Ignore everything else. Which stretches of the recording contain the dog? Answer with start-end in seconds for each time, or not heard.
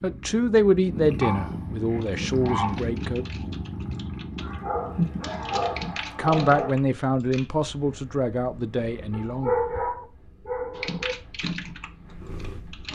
1.2-2.8, 4.4-6.7, 9.1-11.2.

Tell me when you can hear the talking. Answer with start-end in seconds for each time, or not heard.
0.0-3.2, 6.2-9.6.